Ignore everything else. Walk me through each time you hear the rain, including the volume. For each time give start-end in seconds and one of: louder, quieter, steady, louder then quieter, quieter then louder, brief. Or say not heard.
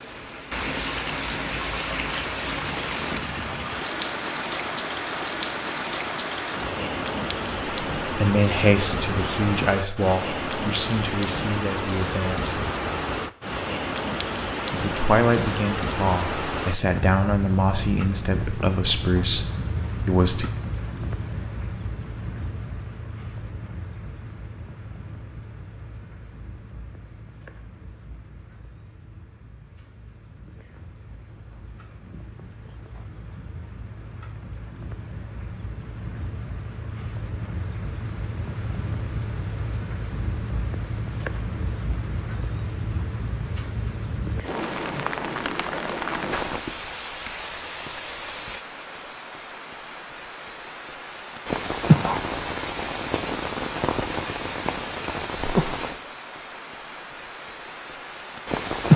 0.0-58.9 quieter then louder.